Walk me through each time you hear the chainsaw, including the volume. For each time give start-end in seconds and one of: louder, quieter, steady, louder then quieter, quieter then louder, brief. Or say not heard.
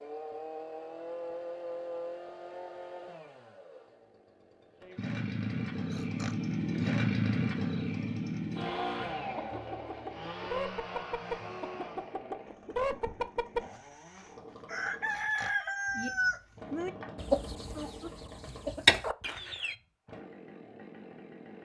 0.0-21.6 louder then quieter.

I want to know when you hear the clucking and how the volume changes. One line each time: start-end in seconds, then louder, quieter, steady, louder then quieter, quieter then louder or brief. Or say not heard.
8.7-13.6 louder
14.7-19.8 quieter then louder.